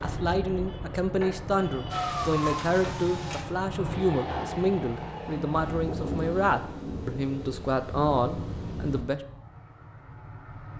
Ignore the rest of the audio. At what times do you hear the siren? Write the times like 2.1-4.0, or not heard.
1.9-3.5.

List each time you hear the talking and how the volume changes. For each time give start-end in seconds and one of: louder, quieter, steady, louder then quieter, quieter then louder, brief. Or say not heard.
0.0-9.2 steady.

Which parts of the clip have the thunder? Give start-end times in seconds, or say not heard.
5.5-9.1.